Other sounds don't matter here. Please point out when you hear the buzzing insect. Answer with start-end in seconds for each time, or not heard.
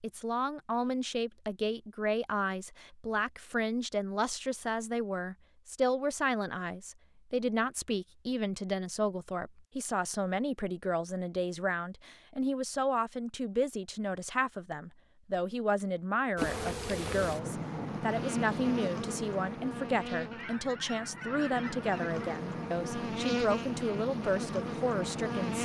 16.4-25.5.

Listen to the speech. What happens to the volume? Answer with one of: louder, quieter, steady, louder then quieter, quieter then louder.
steady.